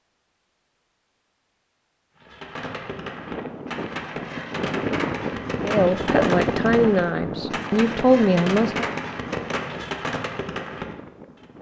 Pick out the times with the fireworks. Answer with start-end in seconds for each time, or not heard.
2.1-11.4.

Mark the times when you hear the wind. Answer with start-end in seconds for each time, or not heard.
3.0-11.5.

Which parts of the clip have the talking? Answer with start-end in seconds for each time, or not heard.
5.6-8.8.